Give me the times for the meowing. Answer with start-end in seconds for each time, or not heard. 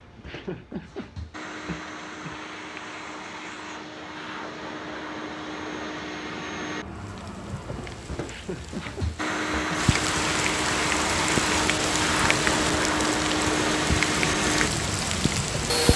not heard.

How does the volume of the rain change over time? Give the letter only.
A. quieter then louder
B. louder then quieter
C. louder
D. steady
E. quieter
C.